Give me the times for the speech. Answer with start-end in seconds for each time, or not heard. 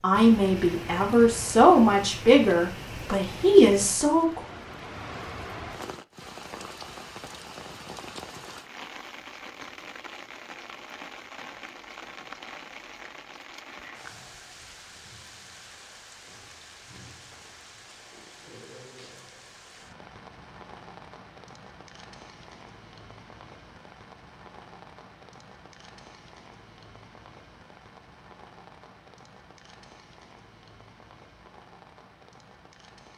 0.0-4.4.